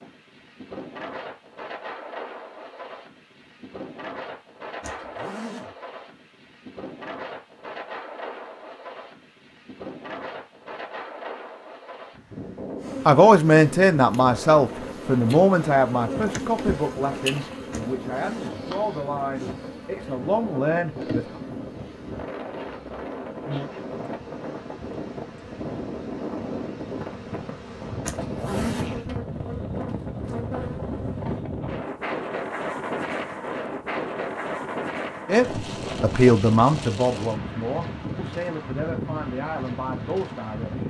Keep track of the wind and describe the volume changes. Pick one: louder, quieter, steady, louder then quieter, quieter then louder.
louder.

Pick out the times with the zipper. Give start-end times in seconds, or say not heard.
4.8-5.7, 17.7-19.6, 28.0-29.1.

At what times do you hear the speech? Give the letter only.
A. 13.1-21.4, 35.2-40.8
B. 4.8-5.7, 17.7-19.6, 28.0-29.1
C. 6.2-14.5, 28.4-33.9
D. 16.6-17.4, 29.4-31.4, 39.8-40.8
A.